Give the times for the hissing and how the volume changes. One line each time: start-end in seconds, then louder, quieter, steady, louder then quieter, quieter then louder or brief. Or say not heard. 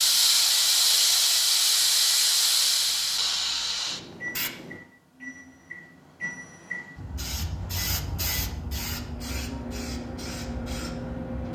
0.0-4.8 quieter
7.0-11.4 quieter.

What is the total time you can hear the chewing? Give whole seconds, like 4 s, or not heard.
not heard.